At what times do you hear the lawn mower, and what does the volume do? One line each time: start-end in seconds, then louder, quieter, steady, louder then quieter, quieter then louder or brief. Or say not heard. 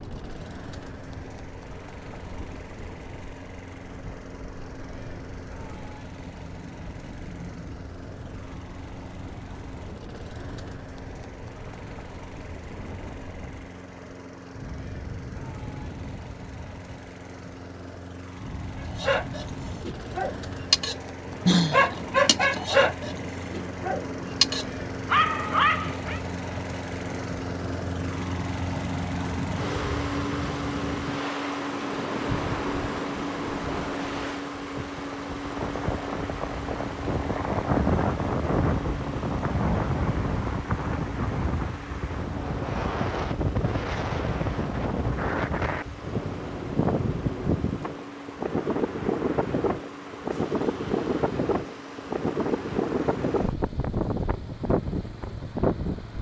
0.0-56.1 louder then quieter.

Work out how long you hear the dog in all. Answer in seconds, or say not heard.
7 s.